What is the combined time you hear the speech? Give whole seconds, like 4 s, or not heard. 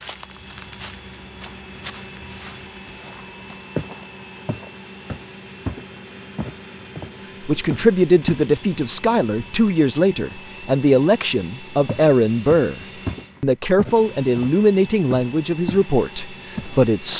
10 s.